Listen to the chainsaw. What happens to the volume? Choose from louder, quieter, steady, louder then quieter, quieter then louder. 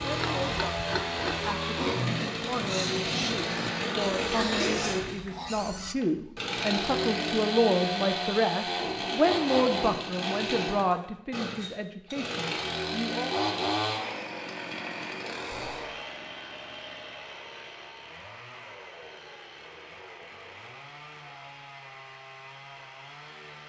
quieter.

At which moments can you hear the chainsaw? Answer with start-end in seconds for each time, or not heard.
0.0-23.6.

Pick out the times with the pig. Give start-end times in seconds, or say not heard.
0.0-6.0.